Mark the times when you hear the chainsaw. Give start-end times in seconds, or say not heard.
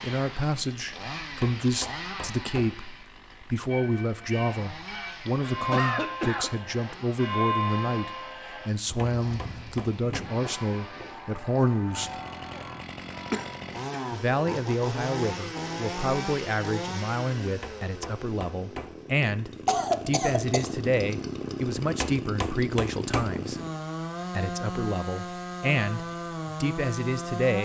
0.0-27.6.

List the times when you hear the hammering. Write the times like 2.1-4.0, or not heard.
1.4-2.8, 8.9-10.3, 17.6-18.9, 22.0-23.3.